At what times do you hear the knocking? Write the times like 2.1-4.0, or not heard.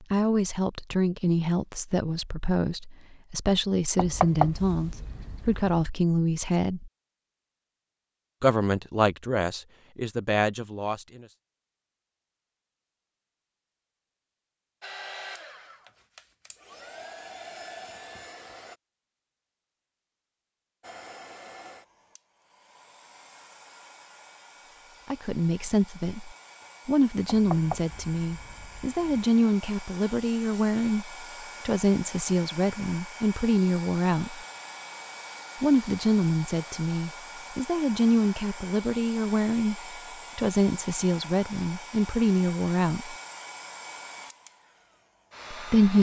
4.0-5.8, 27.2-29.2.